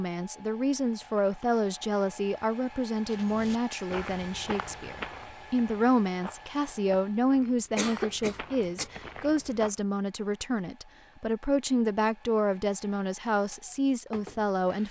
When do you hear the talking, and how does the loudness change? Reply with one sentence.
You can hear the talking from 0.0 to 14.8 s, at a steady volume.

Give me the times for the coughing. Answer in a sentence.
The coughing can be heard from 7.8 to 8.9 s.